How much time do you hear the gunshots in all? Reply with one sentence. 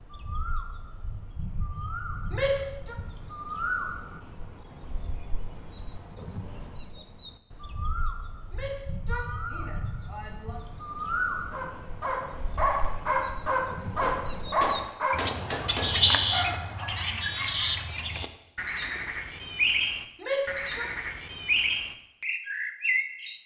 The gunshots can be heard for 2 seconds in total.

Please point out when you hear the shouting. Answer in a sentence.
The shouting can be heard from 2.3 to 3.0 s, from 8.5 to 10.6 s and from 20.2 to 20.9 s.